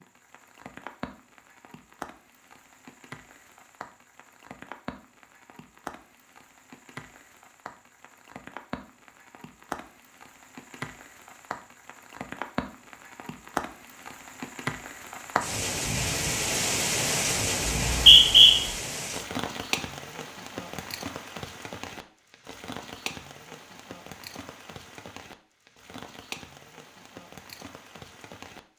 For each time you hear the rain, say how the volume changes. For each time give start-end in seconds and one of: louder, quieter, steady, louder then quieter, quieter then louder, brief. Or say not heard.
0.0-28.6 louder then quieter.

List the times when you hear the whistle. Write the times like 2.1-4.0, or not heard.
17.7-18.6.